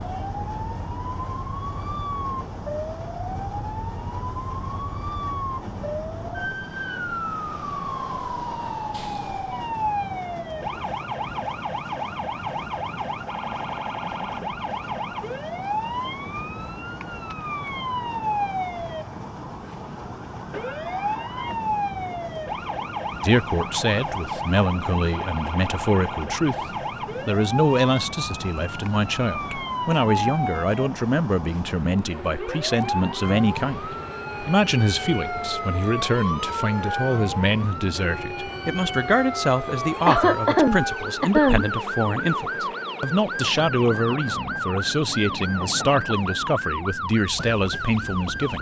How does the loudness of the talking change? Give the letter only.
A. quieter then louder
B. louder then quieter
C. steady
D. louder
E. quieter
C.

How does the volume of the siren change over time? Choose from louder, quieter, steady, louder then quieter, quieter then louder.
steady.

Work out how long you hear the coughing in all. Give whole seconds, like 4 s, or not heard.
3 s.